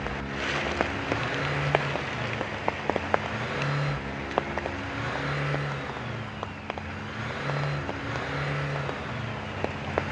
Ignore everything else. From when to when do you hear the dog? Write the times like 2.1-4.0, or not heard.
not heard.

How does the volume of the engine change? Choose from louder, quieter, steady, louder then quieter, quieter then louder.
steady.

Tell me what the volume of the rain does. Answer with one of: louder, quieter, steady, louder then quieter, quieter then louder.
quieter.